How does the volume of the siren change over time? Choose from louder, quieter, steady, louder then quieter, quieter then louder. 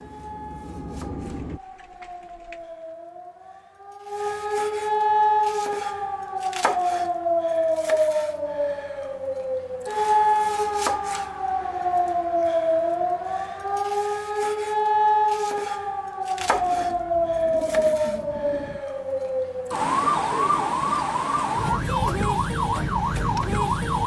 louder.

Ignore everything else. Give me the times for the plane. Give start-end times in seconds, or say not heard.
0.0-1.6.